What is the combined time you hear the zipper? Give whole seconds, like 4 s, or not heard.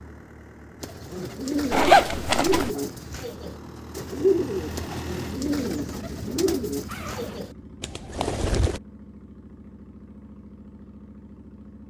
2 s.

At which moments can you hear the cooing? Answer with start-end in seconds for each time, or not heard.
0.8-8.8.